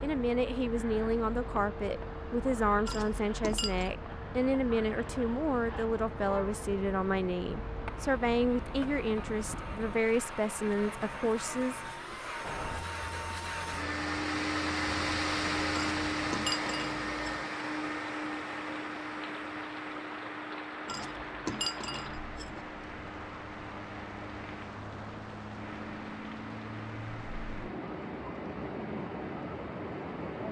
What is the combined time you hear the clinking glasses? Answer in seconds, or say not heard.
5 s.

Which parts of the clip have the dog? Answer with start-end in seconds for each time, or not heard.
not heard.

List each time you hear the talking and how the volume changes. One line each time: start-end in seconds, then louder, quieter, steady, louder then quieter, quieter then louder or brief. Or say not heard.
0.0-11.8 steady.